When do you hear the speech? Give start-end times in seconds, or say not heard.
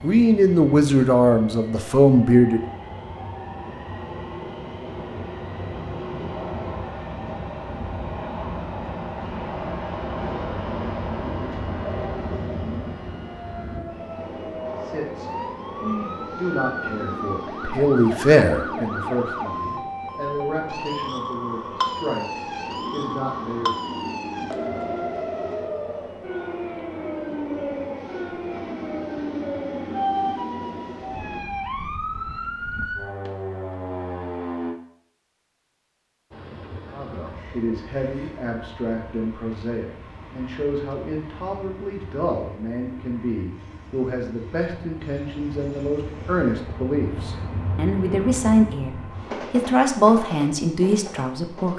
0.0-2.6, 14.8-23.7, 36.9-51.7.